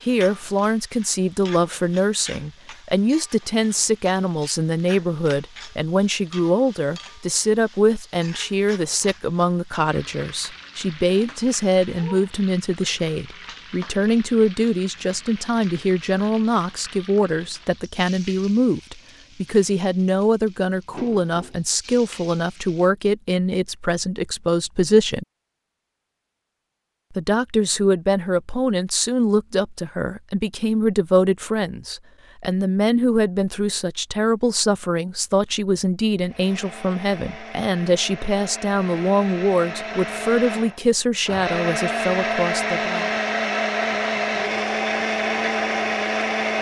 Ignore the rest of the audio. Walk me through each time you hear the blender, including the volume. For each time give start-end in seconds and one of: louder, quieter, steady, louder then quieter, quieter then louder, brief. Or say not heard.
36.2-46.5 louder.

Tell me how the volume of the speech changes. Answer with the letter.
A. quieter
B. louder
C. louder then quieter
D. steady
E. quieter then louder
D.